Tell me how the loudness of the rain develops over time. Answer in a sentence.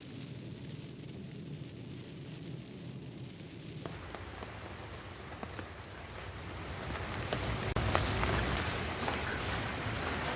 The volume of the rain goes up.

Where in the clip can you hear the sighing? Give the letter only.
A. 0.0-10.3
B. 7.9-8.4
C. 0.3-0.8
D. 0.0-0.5
B.